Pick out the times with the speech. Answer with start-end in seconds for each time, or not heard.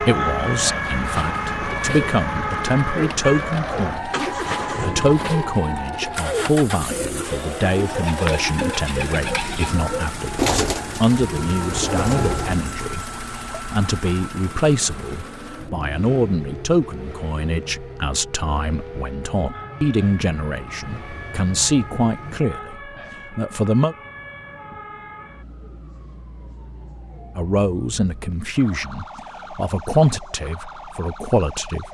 0.0-23.9, 27.4-31.8.